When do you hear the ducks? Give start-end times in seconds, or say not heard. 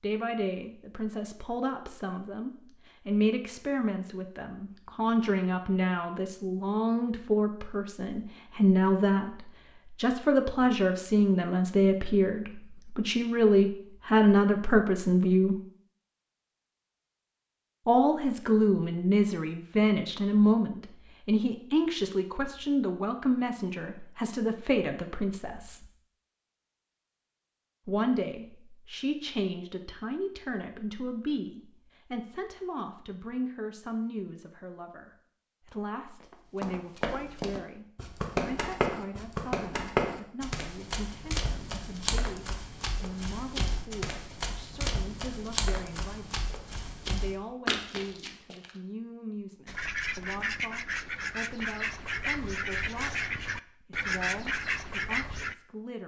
49.6-55.5.